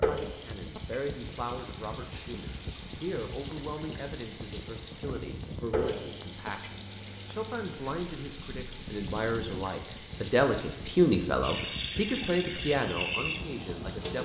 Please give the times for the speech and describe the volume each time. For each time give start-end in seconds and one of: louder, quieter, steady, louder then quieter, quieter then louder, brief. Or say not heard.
0.0-14.2 louder.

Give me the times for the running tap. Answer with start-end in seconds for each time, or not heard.
0.0-14.2.